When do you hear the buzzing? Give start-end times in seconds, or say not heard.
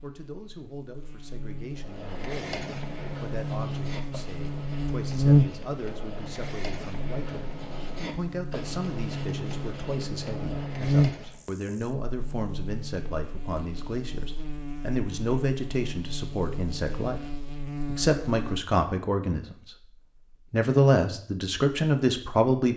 0.0-18.6.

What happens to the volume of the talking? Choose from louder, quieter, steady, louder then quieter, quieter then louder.
louder.